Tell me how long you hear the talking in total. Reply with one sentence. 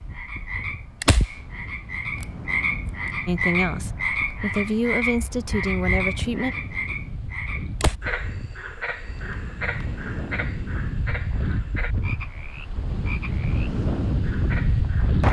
The talking can be heard for 3 seconds in total.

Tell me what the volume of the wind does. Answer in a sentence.
The volume of the wind goes up.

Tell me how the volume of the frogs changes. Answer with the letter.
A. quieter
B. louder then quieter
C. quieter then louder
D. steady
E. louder
A.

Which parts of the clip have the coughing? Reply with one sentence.
You can't hear the coughing here.